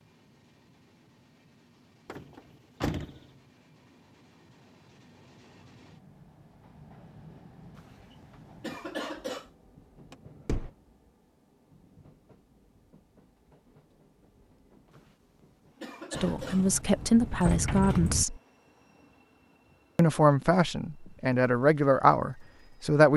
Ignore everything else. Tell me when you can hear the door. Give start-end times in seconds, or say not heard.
2.0-3.2, 10.1-10.7, 16.1-18.2.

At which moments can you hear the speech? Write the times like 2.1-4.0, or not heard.
16.1-18.4, 19.9-23.1.